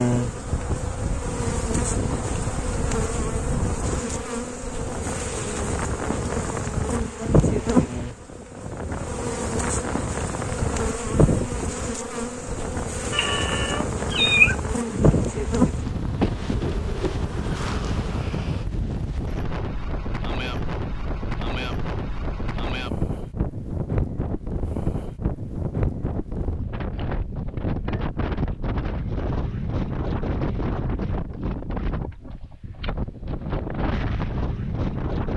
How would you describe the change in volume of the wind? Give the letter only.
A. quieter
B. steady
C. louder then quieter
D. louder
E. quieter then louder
B.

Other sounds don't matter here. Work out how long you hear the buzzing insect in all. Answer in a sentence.
You can hear the buzzing insect for 19 seconds altogether.